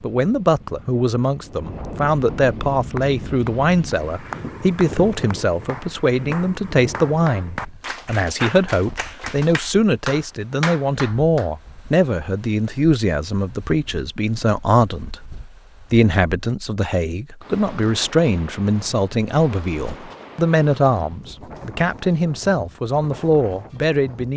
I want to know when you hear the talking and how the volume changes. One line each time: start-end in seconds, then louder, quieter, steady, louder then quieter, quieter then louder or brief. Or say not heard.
0.0-24.3 steady.